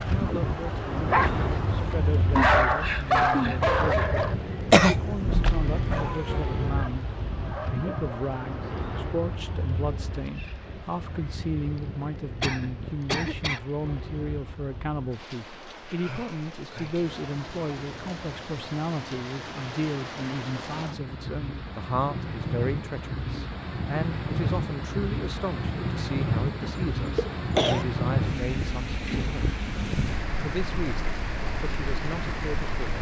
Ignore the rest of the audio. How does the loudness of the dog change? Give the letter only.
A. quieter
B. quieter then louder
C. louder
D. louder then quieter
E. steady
A.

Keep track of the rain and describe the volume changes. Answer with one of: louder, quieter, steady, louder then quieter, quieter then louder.
quieter then louder.